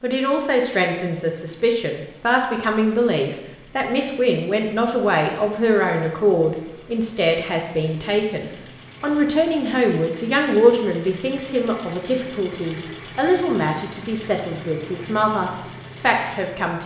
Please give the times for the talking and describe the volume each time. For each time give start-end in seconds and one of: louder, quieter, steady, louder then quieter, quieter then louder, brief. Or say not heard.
0.0-16.8 steady.